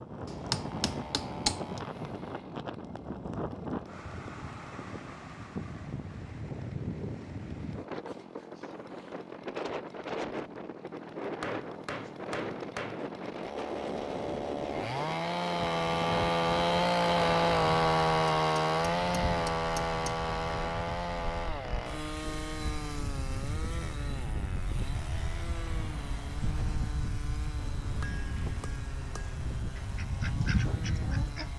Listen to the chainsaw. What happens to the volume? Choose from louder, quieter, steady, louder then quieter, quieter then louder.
louder then quieter.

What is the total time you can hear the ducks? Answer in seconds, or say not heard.
2 s.